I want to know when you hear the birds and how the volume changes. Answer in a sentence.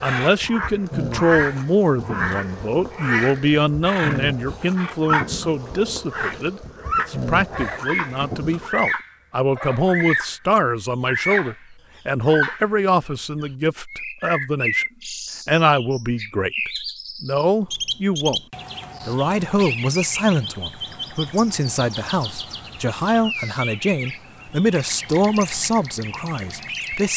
You can hear the birds from 0.0 to 10.4 s, at a steady volume; briefly from 11.1 to 11.6 s; and from 12.2 to 27.1 s, getting quieter.